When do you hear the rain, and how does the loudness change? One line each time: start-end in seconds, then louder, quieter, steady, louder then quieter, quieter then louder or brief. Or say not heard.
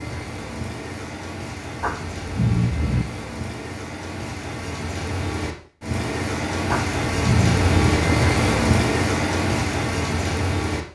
0.0-10.8 louder.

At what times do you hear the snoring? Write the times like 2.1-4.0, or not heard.
1.8-3.0, 6.7-7.9.